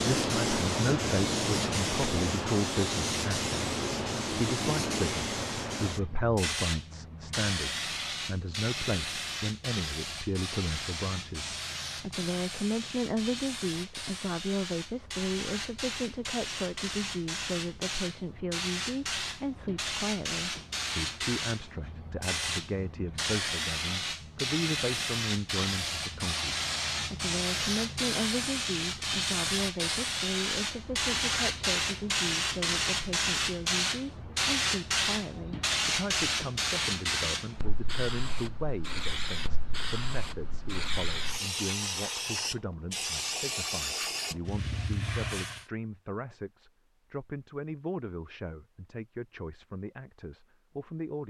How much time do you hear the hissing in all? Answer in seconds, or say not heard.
46 s.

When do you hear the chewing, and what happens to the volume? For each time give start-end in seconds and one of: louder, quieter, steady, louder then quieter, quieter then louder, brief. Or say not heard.
not heard.